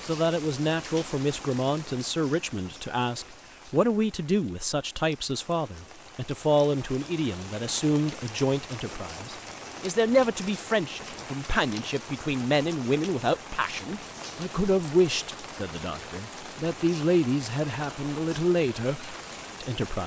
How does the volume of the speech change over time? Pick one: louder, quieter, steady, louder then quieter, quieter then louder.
steady.